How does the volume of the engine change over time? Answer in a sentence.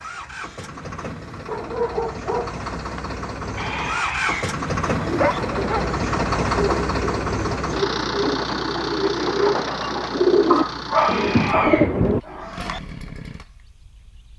The volume of the engine goes up, then down.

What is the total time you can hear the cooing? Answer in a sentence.
The cooing can be heard for 7 seconds in total.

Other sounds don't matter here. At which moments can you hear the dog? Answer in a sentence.
You can hear the dog from 1.4 to 3.0 s, from 5.0 to 5.9 s and from 10.5 to 11.8 s.